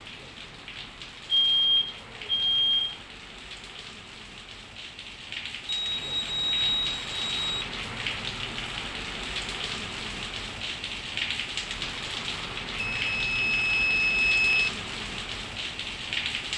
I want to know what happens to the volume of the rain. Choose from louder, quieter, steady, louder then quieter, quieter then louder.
louder.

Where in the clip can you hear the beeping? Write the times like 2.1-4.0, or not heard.
1.3-3.0, 5.7-7.7, 12.8-14.7.